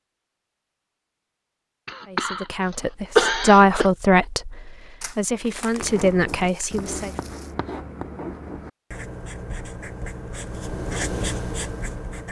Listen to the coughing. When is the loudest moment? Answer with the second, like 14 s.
3 s.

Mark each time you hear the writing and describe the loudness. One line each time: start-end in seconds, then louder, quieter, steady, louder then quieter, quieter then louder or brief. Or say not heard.
5.8-12.2 louder.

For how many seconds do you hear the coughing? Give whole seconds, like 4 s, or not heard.
2 s.